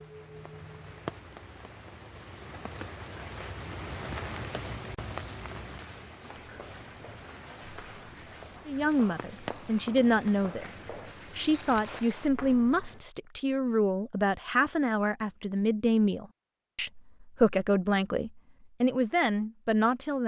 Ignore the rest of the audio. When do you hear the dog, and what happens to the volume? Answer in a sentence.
The dog can't be heard in this clip.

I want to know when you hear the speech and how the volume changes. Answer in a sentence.
You can hear the speech from 8.7 to 20.2 s, at a steady volume.